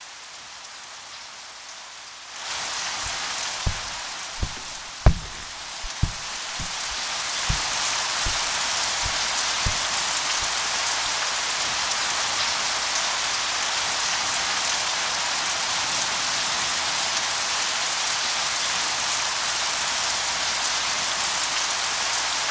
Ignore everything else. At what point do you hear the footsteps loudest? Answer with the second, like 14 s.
5 s.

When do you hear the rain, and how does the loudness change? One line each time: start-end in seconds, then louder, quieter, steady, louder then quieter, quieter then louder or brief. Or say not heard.
0.0-22.4 louder.